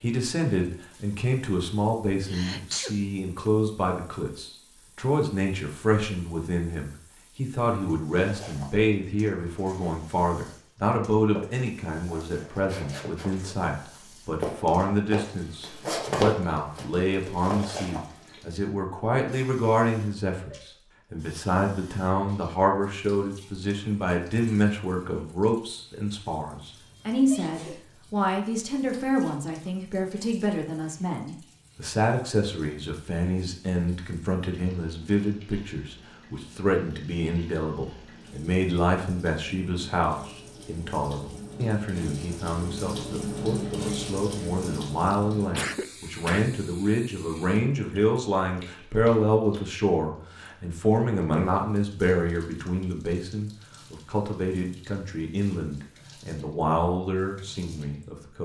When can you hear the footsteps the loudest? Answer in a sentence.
The loudest moment of the footsteps is at 16 seconds.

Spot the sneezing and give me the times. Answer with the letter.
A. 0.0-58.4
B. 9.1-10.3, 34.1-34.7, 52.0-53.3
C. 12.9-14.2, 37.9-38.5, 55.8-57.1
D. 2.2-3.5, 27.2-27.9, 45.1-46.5
D.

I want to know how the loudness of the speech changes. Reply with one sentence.
The loudness of the speech stays about the same.